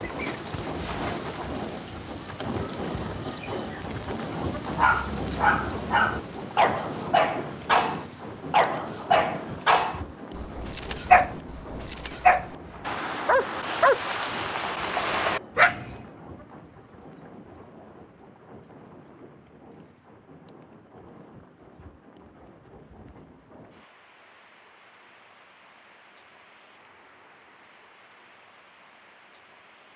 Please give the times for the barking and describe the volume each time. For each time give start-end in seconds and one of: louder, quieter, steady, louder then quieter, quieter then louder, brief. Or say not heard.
4.7-16.1 steady.